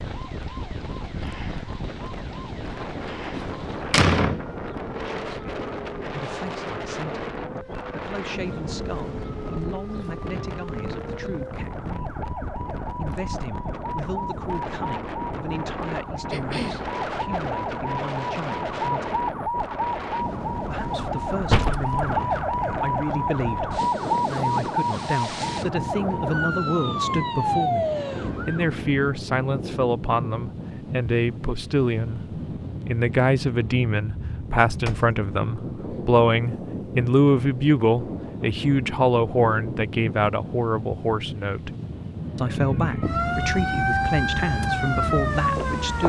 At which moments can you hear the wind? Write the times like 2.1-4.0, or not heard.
0.0-46.0.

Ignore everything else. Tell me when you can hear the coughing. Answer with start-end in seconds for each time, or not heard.
16.3-16.9.